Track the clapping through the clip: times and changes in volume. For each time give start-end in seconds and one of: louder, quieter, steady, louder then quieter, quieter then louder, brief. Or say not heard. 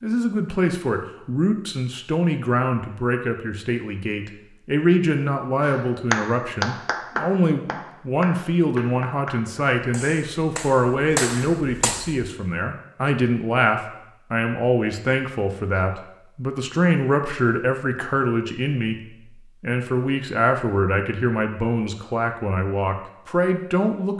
5.6-12.2 quieter then louder.